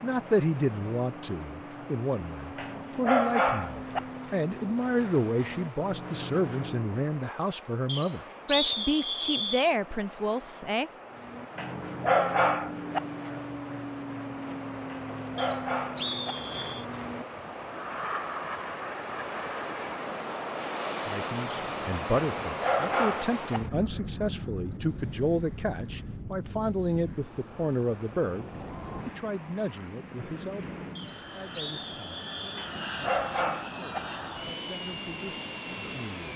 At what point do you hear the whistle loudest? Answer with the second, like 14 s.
9 s.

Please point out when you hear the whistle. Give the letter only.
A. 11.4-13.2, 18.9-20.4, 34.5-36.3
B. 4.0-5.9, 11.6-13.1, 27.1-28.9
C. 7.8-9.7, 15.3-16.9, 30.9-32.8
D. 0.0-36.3
C.